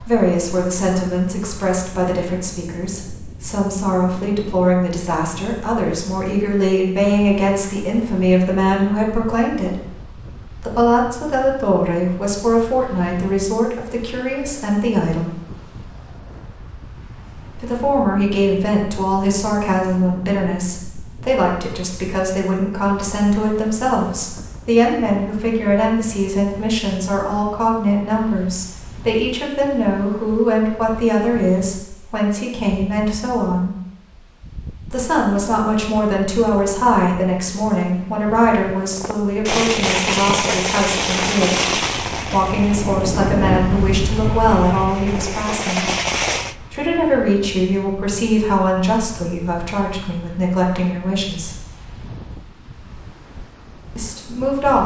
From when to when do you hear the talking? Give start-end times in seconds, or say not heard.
0.0-9.8, 10.6-15.3, 17.6-33.7, 34.9-45.9, 46.7-51.6, 54.0-54.8.